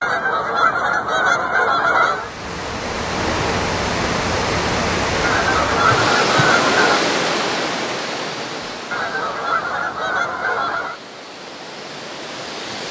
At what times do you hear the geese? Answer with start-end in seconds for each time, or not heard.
0.0-2.3, 5.2-7.0, 8.9-11.0.